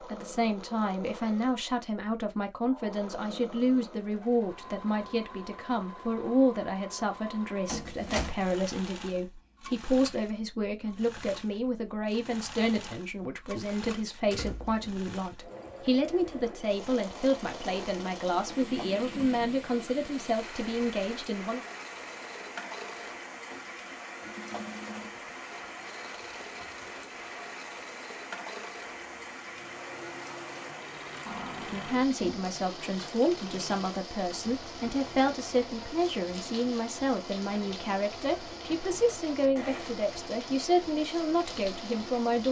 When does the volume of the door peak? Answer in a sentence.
The volume of the door peaks at 8 seconds.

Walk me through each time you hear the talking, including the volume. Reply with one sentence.
You can hear the talking from 0.0 to 21.6 s, at a steady volume; and from 31.7 to 42.4 s, at a steady volume.